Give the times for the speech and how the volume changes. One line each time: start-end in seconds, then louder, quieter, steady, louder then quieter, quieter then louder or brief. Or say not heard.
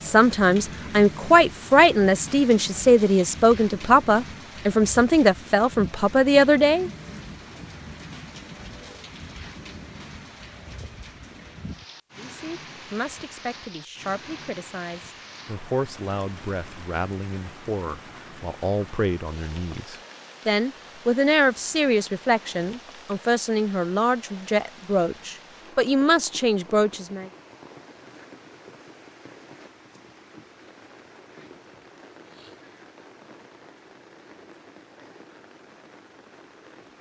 0.0-6.9 steady
12.2-27.3 louder.